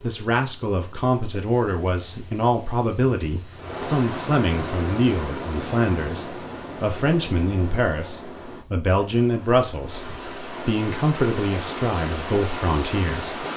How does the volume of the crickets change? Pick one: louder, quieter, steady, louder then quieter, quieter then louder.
louder then quieter.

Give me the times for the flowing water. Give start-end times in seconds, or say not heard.
3.5-13.5.